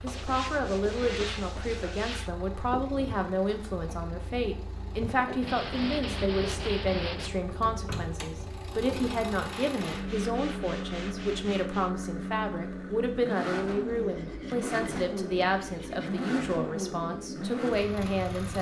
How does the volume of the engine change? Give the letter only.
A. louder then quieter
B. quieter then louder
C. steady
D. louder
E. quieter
D.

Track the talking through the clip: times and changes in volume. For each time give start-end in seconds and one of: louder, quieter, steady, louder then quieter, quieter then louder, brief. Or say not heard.
0.0-18.5 steady.